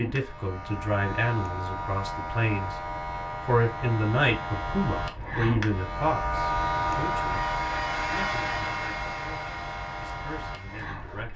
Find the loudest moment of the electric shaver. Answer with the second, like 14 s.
7 s.